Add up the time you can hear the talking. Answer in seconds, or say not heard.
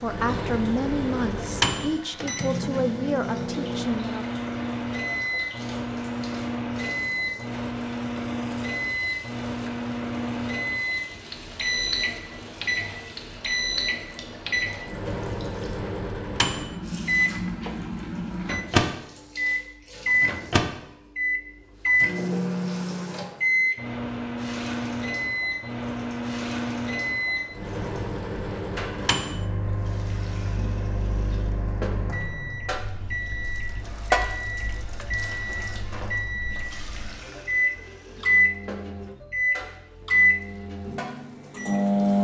4 s.